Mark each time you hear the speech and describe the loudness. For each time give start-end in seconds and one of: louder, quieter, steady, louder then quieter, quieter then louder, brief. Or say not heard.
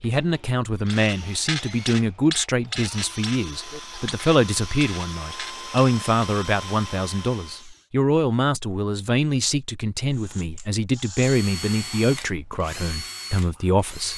0.0-14.1 steady.